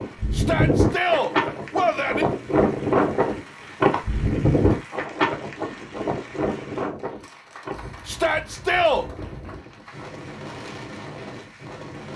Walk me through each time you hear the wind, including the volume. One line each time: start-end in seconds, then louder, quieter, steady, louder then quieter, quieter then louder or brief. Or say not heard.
0.0-12.1 quieter.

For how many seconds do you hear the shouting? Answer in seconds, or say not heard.
3 s.